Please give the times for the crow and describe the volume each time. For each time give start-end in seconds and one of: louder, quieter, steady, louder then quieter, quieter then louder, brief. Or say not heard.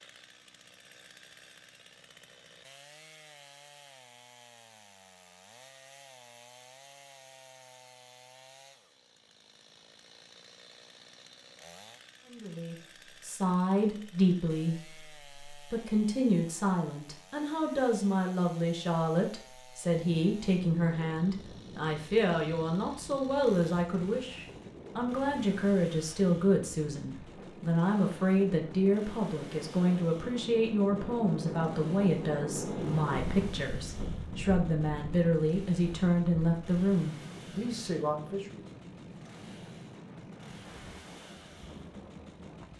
not heard.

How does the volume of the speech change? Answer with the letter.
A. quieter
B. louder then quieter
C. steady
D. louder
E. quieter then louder
C.